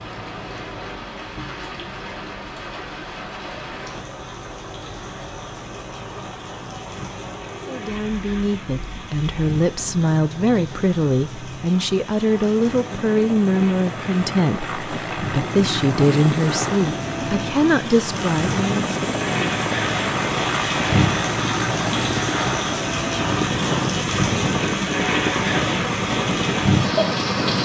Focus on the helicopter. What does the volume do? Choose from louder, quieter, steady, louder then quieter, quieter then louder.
louder.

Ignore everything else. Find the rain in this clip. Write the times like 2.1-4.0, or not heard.
0.0-27.6.